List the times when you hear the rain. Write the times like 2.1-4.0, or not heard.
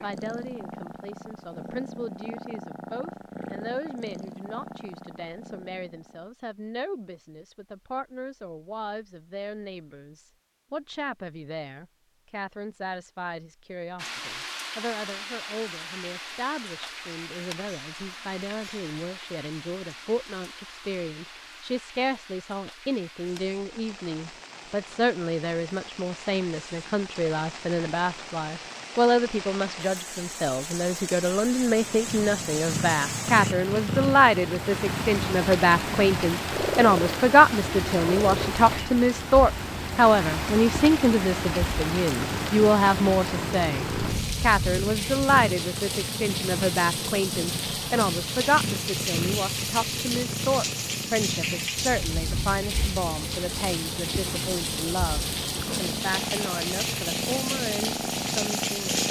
13.9-59.0.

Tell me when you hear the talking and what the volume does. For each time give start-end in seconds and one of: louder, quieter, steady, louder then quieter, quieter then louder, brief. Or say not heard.
0.0-59.0 louder then quieter.